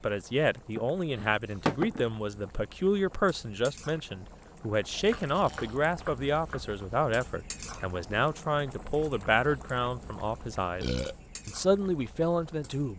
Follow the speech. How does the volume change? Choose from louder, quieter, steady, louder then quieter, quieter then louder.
steady.